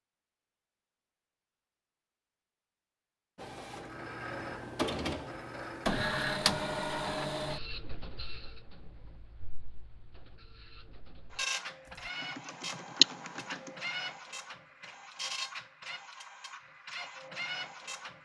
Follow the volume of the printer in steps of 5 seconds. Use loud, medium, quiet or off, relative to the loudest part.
loud, loud, medium, medium.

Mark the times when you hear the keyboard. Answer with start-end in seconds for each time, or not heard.
11.8-13.8.